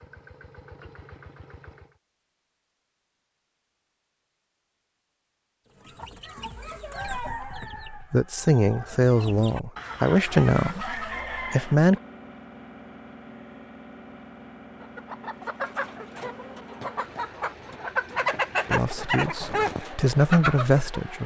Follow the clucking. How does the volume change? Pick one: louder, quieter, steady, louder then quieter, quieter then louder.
louder.